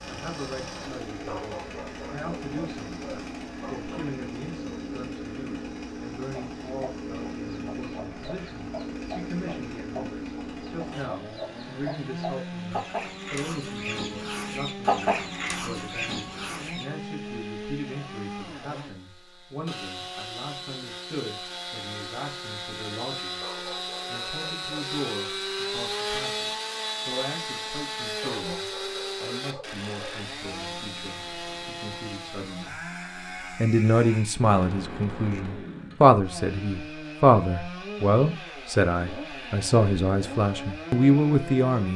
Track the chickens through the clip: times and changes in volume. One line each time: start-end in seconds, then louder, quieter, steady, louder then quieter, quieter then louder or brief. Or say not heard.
6.3-17.3 louder.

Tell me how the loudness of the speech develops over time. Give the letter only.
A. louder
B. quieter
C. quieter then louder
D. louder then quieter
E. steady
A.